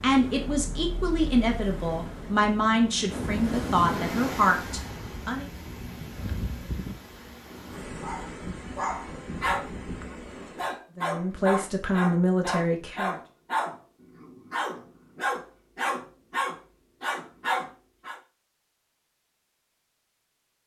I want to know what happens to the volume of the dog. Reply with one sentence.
The loudness of the dog stays about the same.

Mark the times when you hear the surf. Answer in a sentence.
You can hear the surf from 0.0 to 10.8 s.